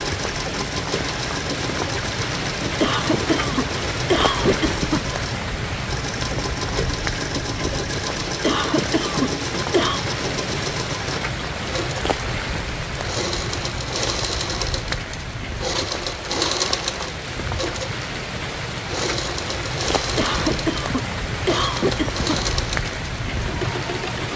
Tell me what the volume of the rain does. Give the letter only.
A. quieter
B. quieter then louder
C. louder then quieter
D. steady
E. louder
D.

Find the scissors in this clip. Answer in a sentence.
You can't hear the scissors here.